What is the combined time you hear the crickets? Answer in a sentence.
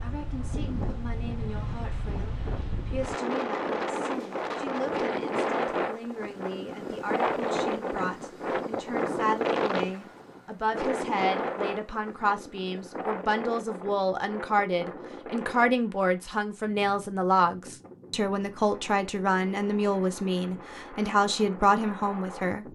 The crickets can't be heard in this clip.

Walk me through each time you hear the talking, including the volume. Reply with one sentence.
The talking can be heard from 0.0 to 22.6 s, getting louder.